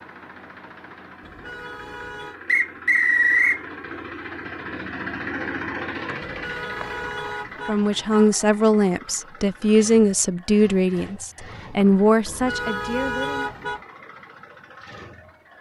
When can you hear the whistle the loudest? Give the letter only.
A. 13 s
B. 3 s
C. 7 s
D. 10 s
B.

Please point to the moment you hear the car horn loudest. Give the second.
13 s.